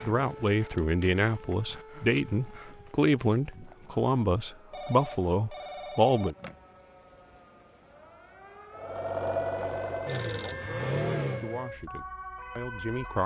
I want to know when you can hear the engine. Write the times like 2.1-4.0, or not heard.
8.7-11.7.